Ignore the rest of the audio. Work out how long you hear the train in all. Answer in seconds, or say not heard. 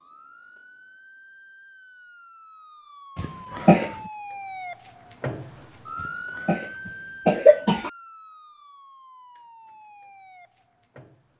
not heard.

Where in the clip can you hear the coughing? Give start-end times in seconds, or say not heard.
3.1-4.0, 6.0-7.9.